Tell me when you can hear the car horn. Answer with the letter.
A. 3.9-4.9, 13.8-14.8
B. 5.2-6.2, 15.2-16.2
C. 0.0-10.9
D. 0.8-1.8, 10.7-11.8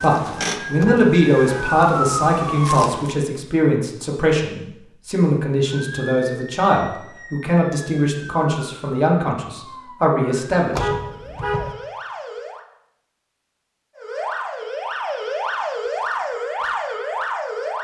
D.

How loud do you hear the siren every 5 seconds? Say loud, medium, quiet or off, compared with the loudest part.
loud, quiet, medium, loud.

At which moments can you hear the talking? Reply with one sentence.
You can hear the talking from 0.0 to 10.9 s.